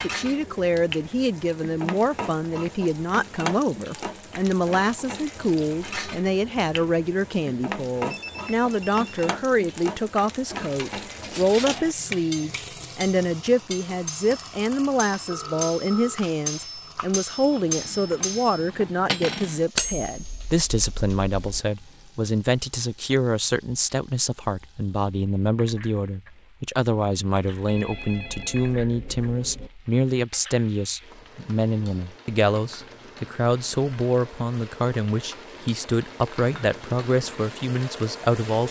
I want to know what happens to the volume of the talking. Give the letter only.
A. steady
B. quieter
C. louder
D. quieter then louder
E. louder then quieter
A.